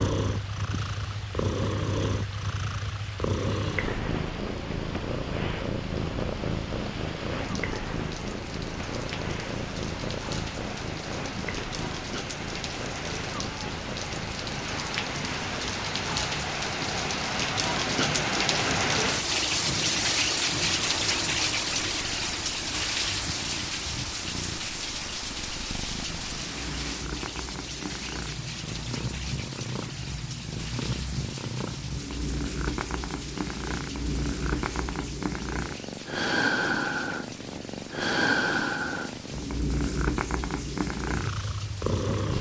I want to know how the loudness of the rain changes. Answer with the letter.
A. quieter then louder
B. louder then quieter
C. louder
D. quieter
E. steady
B.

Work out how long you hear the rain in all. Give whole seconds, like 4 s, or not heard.
42 s.